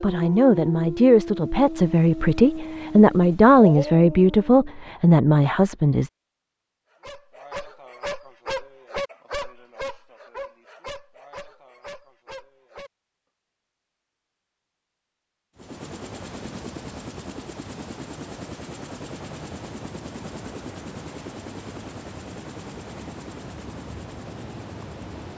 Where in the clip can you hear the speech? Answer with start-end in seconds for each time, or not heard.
0.0-6.1.